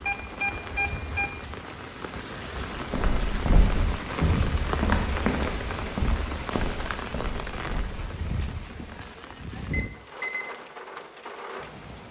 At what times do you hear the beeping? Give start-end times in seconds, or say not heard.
0.1-1.3, 9.7-10.6.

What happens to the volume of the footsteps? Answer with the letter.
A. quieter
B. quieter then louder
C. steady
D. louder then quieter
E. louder
A.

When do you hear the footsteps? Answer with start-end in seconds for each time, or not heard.
2.9-9.1.